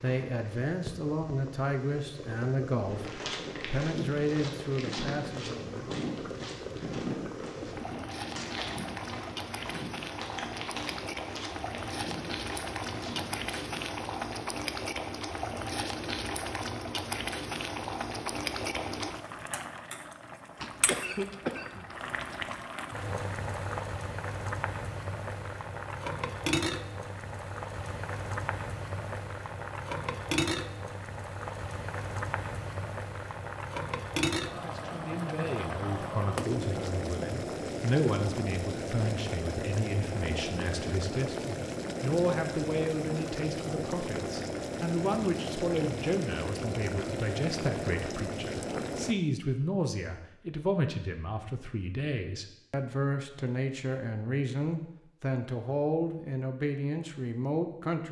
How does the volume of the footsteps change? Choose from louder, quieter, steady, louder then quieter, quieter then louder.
quieter.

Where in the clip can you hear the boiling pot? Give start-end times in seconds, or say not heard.
0.0-49.1.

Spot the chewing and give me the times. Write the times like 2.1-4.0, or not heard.
not heard.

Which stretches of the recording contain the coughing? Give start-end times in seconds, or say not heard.
20.6-22.6.